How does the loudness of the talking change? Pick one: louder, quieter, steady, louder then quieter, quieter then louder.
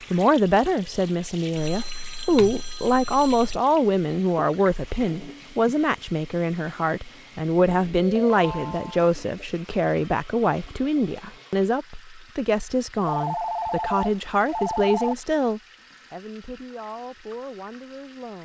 quieter.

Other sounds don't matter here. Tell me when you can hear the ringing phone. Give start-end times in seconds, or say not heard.
1.6-3.6, 8.0-9.1, 13.1-15.2.